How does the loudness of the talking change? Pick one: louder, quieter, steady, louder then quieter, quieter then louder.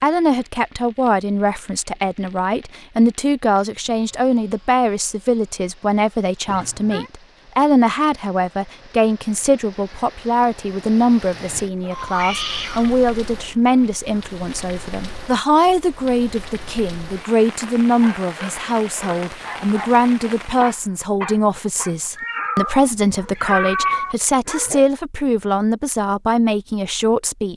steady.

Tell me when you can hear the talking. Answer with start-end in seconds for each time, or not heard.
0.0-27.5.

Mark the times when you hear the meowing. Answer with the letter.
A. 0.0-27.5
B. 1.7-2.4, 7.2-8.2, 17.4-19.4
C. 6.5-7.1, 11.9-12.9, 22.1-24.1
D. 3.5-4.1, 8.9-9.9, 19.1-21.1
C.